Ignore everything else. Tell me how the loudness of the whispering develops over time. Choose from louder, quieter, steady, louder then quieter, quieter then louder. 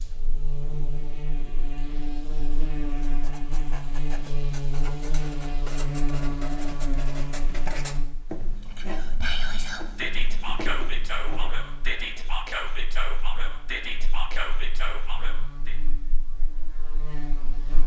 steady.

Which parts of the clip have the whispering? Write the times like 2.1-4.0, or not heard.
8.6-15.8.